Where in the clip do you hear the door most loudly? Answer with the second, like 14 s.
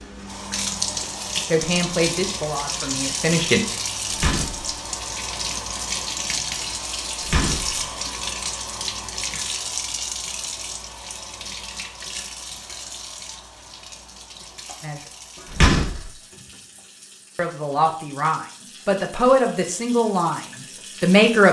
16 s.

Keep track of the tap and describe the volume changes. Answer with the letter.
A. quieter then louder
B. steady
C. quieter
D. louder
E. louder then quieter
C.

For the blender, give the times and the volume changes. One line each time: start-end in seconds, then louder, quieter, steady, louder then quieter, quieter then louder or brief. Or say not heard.
not heard.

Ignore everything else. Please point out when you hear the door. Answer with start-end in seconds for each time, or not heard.
4.1-4.7, 7.2-7.8, 15.4-16.0.